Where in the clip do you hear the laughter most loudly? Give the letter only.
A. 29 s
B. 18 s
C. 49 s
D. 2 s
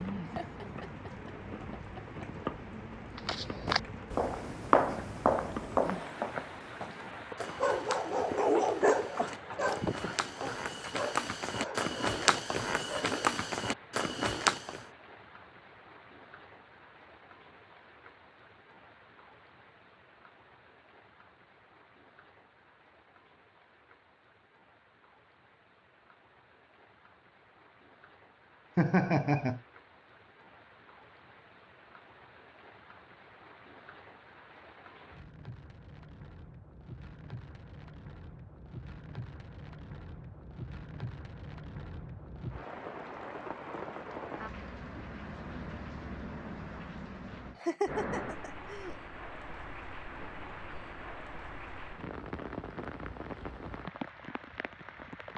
A.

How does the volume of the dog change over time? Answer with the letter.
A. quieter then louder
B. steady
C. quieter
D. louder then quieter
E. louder
C.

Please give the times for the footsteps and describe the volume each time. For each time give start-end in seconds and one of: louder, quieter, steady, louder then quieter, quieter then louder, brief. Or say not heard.
3.1-14.8 quieter then louder.